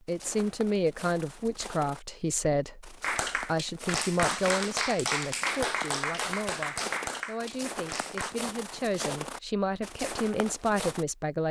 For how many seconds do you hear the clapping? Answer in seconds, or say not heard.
5 s.